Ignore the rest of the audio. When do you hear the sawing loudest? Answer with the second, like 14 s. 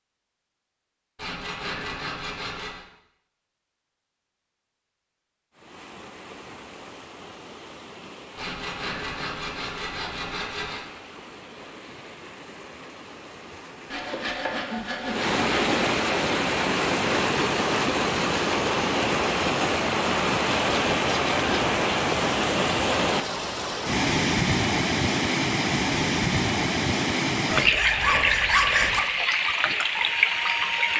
29 s.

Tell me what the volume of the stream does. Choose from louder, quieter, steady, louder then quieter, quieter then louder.
louder.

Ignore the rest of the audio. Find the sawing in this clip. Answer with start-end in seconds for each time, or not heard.
1.1-2.9, 8.3-10.8, 13.9-15.8, 20.6-21.7, 27.5-29.0.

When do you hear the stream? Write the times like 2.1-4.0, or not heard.
5.5-30.9.